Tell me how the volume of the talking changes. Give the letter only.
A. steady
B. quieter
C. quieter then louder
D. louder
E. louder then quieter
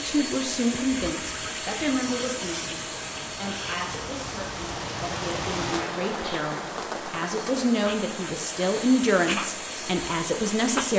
C.